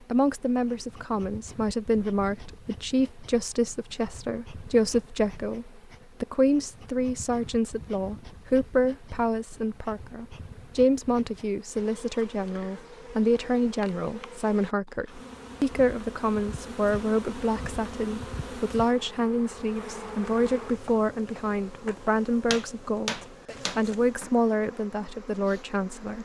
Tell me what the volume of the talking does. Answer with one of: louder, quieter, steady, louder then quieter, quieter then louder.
steady.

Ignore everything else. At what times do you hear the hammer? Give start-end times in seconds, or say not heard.
22.5-24.3.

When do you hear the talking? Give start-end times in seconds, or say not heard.
0.1-26.2.